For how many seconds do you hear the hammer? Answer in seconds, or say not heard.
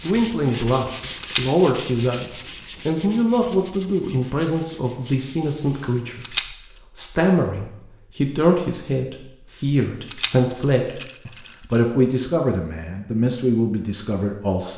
not heard.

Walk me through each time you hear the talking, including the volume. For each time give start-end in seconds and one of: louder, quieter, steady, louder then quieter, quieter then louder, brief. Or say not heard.
0.0-14.7 steady.